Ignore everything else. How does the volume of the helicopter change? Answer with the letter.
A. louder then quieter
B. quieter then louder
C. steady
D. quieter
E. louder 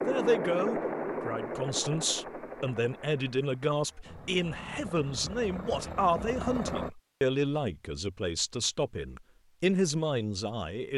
B.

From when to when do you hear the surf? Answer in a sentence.
The surf can't be heard in this clip.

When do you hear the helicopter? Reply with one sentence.
The helicopter can be heard from 0.0 to 6.9 s.